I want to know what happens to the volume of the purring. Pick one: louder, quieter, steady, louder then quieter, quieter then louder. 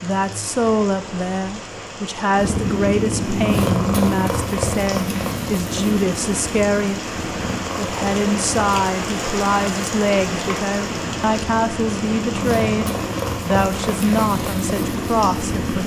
quieter then louder.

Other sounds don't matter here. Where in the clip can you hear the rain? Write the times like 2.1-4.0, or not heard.
0.0-15.8.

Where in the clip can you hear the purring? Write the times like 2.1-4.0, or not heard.
2.3-15.8.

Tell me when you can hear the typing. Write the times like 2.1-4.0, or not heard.
not heard.